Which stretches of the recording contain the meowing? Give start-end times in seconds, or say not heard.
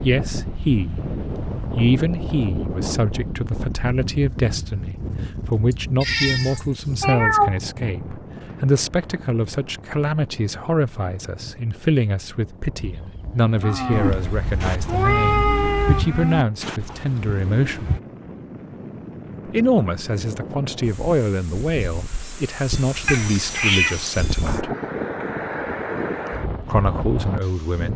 5.7-7.7, 13.9-16.1, 23.1-24.2.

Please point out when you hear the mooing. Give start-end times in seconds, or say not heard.
12.9-18.0.